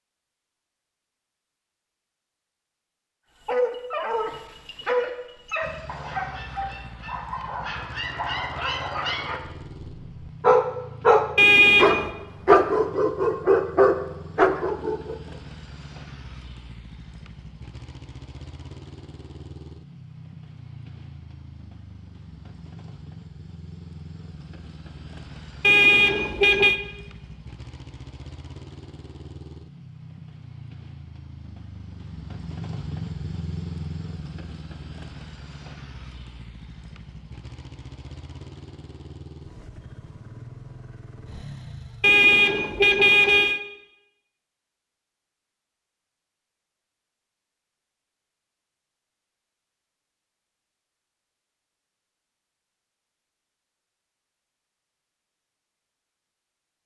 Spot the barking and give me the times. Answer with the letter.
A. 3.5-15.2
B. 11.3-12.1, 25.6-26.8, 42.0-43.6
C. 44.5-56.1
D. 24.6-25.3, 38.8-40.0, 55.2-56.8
A.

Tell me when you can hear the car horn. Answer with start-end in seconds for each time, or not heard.
11.3-12.1, 25.6-26.8, 42.0-43.6.